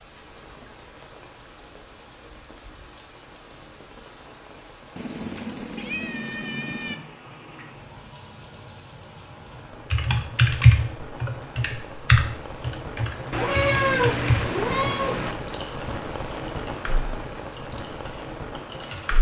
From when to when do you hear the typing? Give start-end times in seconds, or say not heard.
9.9-15.8, 16.4-17.6, 18.7-19.1.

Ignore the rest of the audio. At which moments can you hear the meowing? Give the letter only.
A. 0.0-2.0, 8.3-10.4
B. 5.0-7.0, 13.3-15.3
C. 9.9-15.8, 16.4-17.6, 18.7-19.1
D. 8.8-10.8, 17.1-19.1
B.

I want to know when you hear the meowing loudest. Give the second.
14 s.